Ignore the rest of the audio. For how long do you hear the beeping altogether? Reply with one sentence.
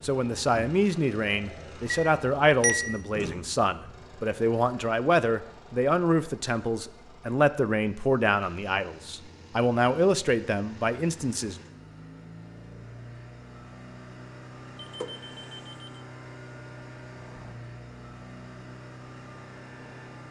You can hear the beeping for 2 seconds altogether.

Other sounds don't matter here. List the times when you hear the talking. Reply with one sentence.
The talking can be heard from 0.0 to 11.6 s.